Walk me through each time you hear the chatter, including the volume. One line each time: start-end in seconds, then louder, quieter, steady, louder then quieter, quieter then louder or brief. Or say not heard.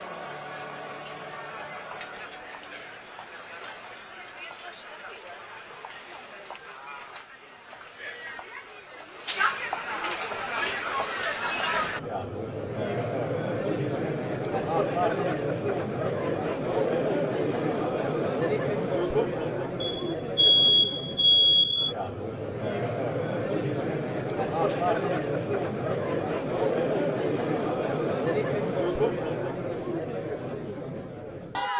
0.0-31.7 louder.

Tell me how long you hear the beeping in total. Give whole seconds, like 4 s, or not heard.
2 s.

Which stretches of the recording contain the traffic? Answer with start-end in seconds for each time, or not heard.
not heard.